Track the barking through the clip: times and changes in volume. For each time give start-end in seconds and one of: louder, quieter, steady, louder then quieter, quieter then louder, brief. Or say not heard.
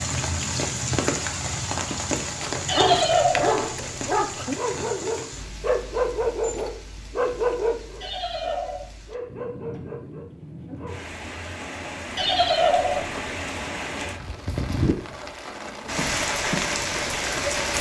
2.4-11.0 quieter.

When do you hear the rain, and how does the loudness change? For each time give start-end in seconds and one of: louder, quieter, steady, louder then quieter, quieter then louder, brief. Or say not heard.
0.0-17.7 quieter then louder.